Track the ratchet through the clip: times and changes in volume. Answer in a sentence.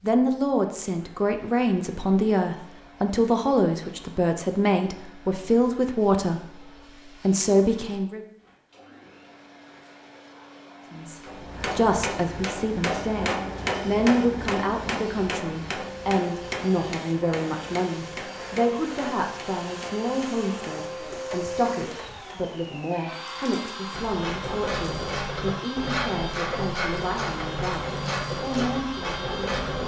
You can hear the ratchet from 23.9 to 29.8 s, at a steady volume.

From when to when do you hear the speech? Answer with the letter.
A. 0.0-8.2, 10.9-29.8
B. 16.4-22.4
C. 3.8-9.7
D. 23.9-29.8
A.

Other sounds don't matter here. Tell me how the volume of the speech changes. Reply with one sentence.
The volume of the speech goes down.